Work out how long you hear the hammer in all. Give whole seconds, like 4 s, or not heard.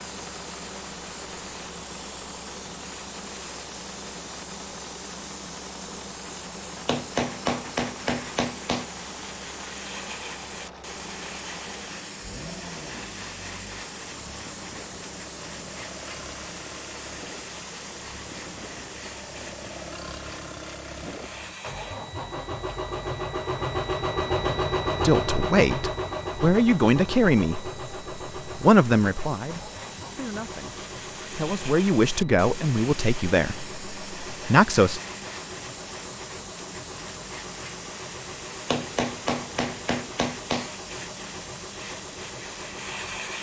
4 s.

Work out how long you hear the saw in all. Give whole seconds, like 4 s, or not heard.
not heard.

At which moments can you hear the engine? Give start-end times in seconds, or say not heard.
0.0-43.3.